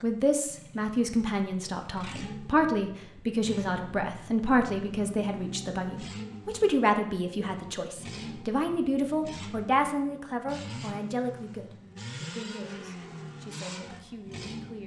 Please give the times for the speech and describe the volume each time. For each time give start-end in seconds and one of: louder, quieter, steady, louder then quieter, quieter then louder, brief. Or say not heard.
0.0-14.8 quieter.